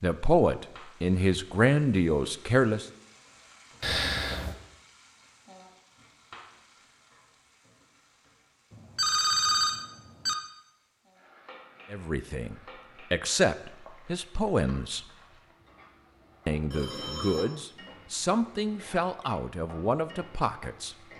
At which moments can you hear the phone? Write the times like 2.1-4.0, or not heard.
3.8-4.5, 8.8-10.3, 16.7-17.5.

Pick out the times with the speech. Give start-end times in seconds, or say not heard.
0.0-2.9, 11.9-15.1, 16.4-20.9.